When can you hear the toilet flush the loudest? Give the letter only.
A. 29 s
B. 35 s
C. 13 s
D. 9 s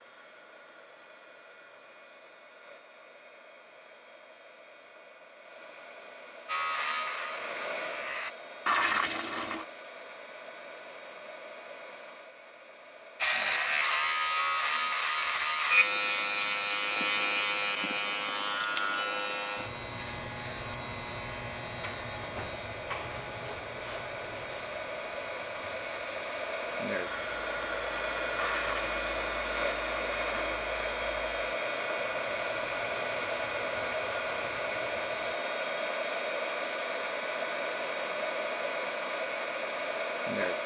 D.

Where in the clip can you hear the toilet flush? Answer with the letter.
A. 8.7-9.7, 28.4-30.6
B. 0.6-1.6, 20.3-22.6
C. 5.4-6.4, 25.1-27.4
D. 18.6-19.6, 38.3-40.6
A.